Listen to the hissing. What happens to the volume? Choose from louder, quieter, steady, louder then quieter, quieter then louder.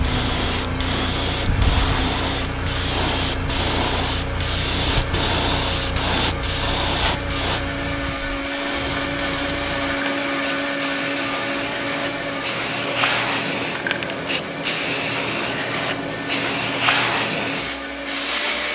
quieter then louder.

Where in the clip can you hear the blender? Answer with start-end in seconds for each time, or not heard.
0.0-18.6.